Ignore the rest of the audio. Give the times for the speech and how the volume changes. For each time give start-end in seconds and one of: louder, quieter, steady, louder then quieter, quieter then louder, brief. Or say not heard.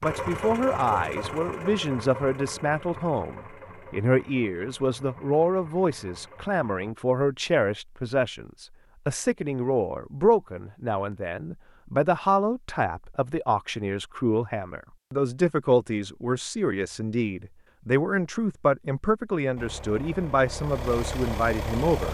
0.0-22.0 steady.